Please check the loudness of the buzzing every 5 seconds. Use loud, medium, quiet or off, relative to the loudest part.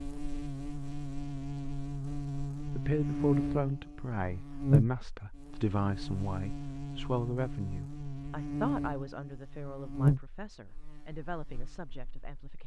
loud, medium, loud.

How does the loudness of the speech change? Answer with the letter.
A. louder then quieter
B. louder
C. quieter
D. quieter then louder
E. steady
C.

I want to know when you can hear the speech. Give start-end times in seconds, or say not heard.
2.8-12.6.